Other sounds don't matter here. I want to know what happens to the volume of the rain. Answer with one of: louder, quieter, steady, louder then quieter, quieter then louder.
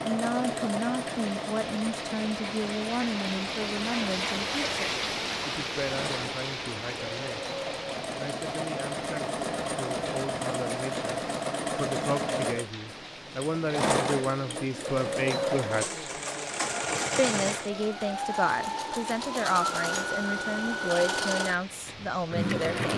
quieter.